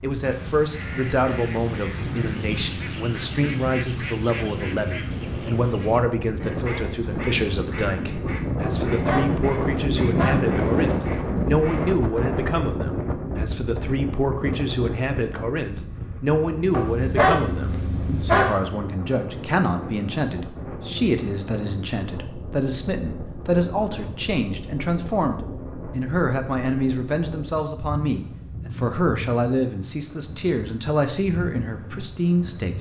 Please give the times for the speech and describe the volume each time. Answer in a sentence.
You can hear the speech from 0.0 to 32.7 s, at a steady volume.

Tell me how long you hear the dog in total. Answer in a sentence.
The dog can be heard for 4 seconds in total.